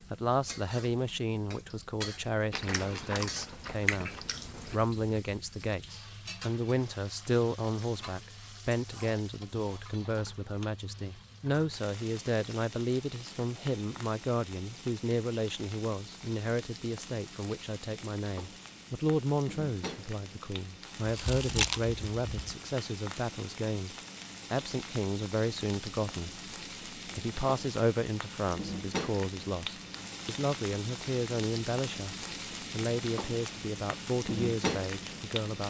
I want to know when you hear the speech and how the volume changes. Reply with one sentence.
The speech can be heard from 0.1 to 35.6 s, at a steady volume.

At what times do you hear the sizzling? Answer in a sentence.
The sizzling can be heard from 0.0 to 35.6 s.